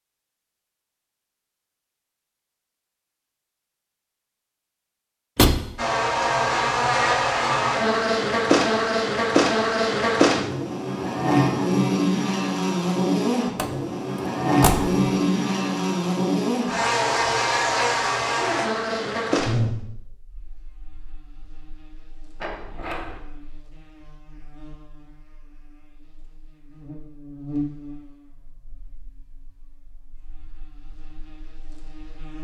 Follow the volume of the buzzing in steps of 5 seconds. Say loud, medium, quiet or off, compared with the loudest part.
off, loud, loud, loud, quiet, quiet, quiet.